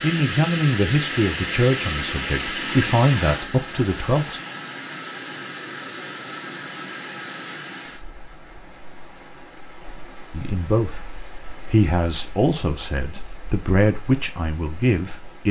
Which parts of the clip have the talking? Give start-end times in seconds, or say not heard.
0.0-4.4, 10.3-15.4.